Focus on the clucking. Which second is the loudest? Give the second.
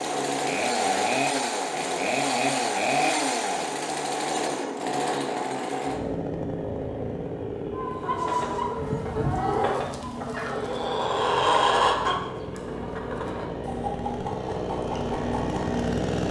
12 s.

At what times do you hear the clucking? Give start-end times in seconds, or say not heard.
7.8-15.8.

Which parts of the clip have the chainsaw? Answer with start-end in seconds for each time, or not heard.
0.0-16.2.